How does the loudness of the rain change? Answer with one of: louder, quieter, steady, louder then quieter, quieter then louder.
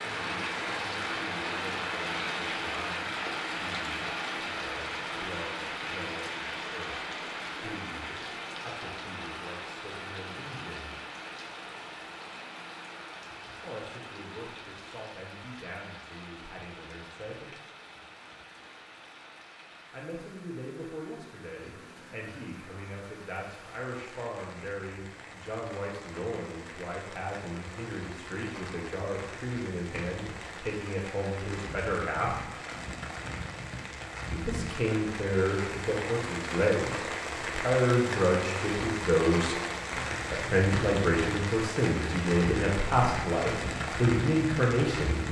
quieter then louder.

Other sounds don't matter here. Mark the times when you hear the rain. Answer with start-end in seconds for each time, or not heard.
0.0-45.2.